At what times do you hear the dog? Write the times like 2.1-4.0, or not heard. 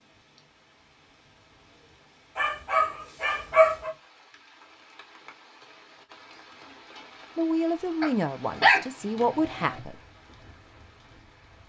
2.4-3.9, 8.0-9.8.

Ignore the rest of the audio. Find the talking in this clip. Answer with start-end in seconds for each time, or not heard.
7.3-9.9.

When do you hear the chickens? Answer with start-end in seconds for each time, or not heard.
not heard.